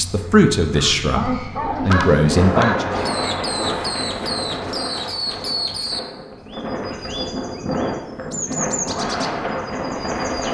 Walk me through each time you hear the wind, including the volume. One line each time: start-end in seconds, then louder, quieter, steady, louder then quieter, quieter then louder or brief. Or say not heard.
2.2-10.4 quieter then louder.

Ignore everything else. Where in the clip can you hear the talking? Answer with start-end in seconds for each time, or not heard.
0.0-2.9.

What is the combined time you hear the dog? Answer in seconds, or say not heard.
2 s.